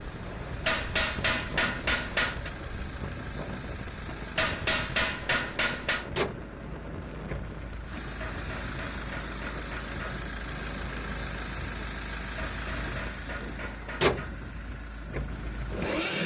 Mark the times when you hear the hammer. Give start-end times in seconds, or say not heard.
0.7-2.5, 4.3-6.0, 8.2-10.2, 12.3-14.3.